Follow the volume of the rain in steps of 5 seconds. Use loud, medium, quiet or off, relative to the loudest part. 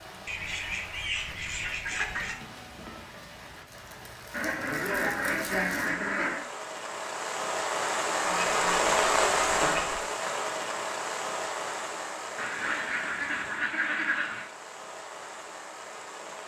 quiet, loud, medium, quiet.